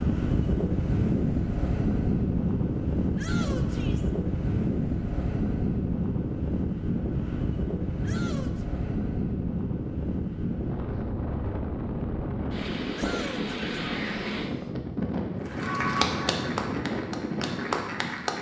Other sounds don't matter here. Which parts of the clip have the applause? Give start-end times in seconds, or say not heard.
15.4-18.3.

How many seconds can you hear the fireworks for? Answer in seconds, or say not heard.
not heard.